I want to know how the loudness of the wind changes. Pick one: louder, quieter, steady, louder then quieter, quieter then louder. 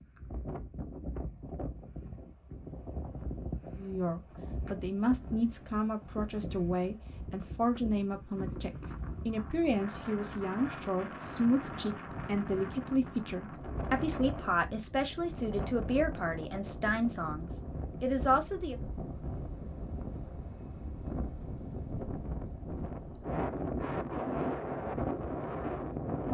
louder.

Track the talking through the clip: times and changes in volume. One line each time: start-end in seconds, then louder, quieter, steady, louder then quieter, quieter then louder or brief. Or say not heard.
3.8-18.8 steady.